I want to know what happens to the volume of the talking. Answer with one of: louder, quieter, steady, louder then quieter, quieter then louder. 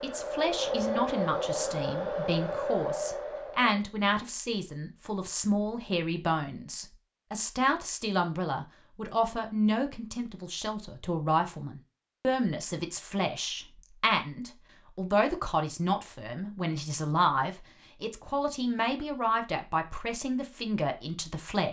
steady.